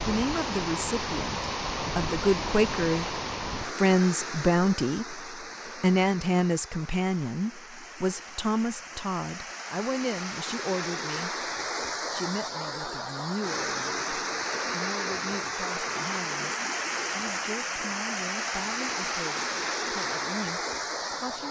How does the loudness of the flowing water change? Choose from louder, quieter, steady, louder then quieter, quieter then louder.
quieter then louder.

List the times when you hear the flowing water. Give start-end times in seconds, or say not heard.
0.0-21.4.